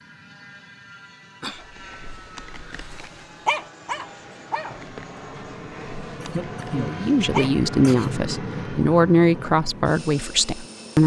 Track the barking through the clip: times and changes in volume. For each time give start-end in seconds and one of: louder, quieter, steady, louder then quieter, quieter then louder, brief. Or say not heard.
1.4-7.5 louder then quieter.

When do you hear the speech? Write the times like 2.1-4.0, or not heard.
6.7-11.0.